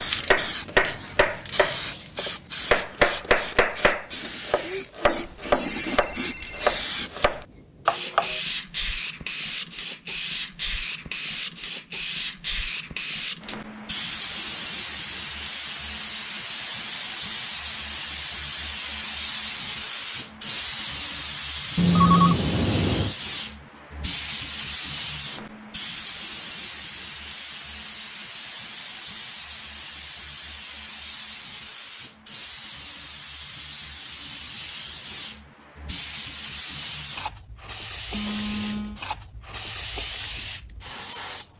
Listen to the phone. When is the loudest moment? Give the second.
22 s.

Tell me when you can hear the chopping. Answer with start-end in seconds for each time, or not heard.
0.0-8.4.